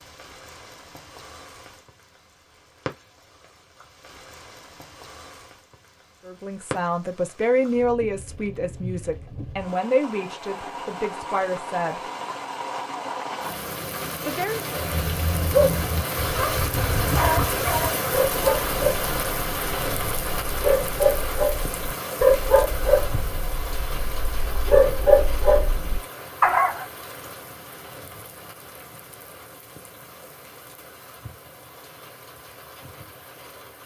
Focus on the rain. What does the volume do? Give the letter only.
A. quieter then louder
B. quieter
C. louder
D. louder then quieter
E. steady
D.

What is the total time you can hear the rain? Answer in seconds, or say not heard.
34 s.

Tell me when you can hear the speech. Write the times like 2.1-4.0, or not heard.
6.2-12.0, 14.2-14.7.